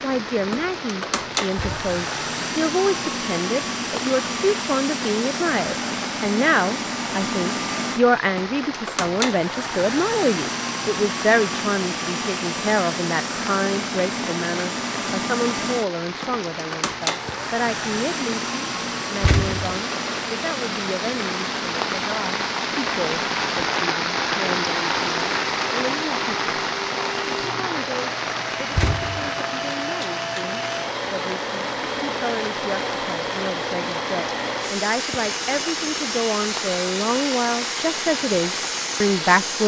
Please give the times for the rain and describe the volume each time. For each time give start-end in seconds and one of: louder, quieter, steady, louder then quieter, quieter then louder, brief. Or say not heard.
0.0-39.6 louder then quieter.